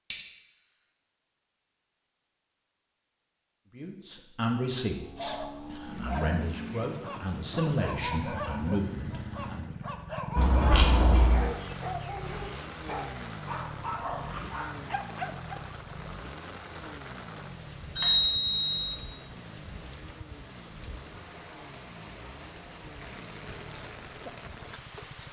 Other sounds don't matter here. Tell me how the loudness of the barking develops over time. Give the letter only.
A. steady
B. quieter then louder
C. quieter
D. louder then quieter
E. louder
A.